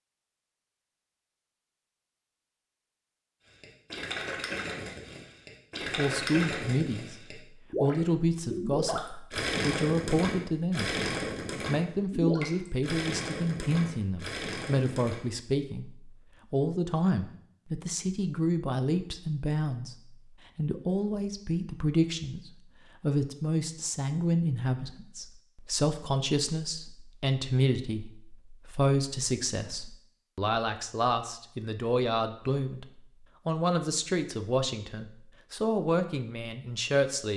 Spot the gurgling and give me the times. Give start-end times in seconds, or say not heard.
3.5-15.2.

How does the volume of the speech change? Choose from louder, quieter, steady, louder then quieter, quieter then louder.
steady.